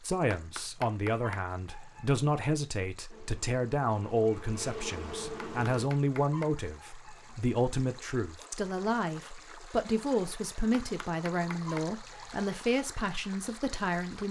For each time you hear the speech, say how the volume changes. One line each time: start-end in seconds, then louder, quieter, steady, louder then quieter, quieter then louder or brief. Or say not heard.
0.0-14.2 steady.